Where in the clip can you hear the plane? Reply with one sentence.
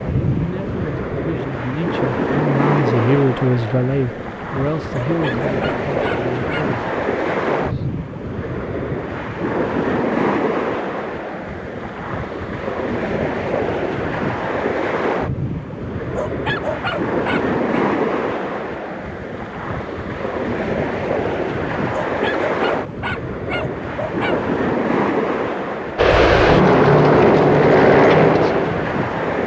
The plane can be heard from 25.9 to 29.4 s.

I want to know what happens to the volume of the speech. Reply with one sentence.
The volume of the speech goes up, then down.